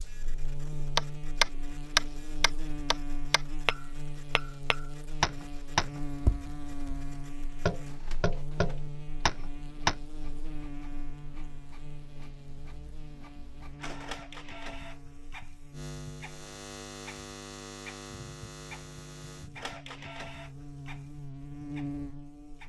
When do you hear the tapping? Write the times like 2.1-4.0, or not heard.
0.9-9.9.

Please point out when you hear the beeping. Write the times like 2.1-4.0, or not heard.
not heard.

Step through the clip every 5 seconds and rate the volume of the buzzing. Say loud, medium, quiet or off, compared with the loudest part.
loud, loud, medium, loud, loud.